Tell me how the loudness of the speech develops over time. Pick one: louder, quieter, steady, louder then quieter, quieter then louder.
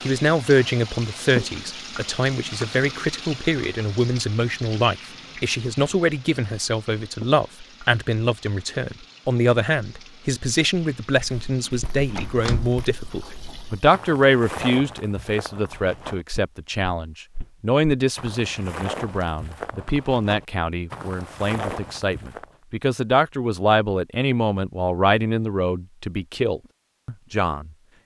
steady.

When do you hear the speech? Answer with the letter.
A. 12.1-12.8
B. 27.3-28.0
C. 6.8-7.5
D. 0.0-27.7
D.